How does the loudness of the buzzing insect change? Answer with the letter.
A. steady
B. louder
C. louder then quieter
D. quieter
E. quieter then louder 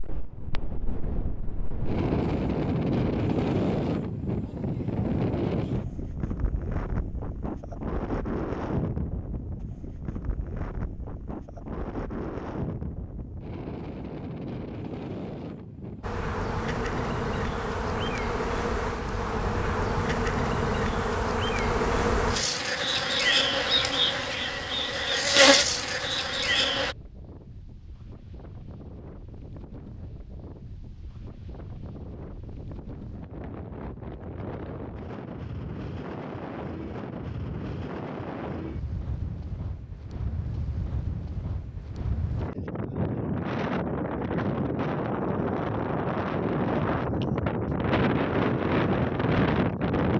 B.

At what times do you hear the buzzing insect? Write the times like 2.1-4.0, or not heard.
16.0-26.9.